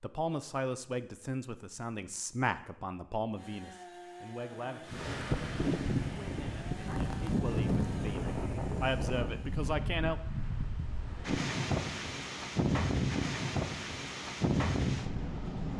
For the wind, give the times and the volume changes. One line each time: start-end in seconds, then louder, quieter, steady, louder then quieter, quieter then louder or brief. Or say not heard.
4.8-15.7 quieter then louder.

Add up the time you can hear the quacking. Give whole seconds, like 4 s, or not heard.
not heard.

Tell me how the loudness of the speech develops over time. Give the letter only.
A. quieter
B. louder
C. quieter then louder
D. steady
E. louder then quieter
C.